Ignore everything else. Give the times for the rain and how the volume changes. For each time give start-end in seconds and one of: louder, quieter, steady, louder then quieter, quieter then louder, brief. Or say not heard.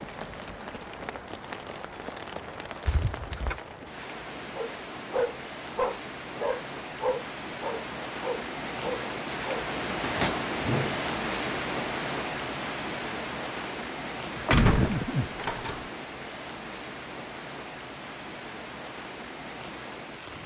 0.0-20.4 louder then quieter.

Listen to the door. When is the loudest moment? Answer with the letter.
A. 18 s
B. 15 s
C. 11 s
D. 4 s
B.